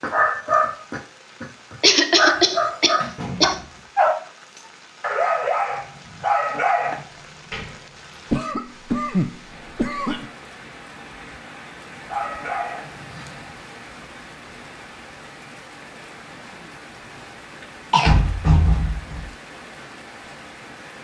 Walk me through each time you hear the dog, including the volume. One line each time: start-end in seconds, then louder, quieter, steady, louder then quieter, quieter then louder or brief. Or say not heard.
0.0-7.0 steady
12.0-13.5 brief.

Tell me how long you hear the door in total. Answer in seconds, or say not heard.
3 s.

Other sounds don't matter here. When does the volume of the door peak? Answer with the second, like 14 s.
19 s.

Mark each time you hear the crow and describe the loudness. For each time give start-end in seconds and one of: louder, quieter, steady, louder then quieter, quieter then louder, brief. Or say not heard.
not heard.